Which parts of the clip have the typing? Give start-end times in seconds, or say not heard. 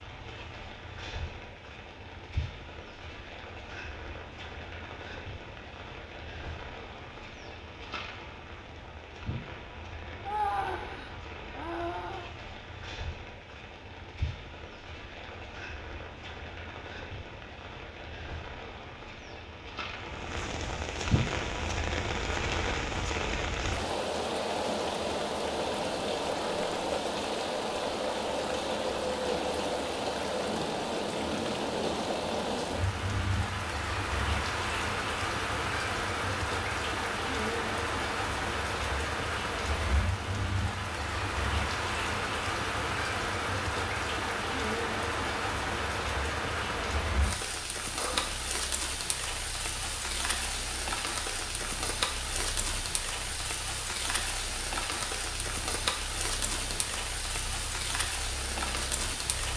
not heard.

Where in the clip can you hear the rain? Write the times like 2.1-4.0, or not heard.
0.0-59.5.